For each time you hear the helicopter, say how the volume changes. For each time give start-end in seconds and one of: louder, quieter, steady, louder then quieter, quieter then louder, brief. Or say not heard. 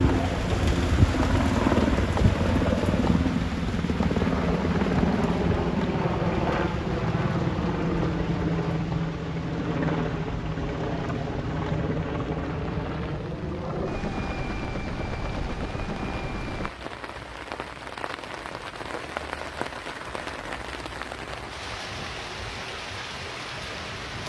0.0-16.7 quieter.